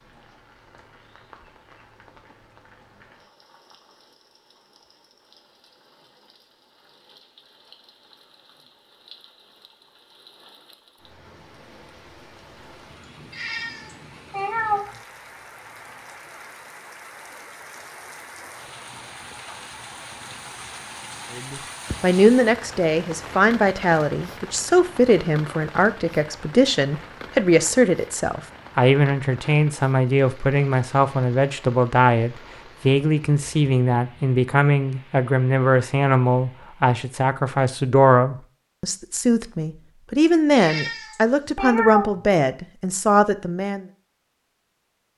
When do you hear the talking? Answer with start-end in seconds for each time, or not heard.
21.4-43.9.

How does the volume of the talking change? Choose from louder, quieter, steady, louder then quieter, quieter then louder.
steady.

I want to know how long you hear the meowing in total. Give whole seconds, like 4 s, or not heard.
3 s.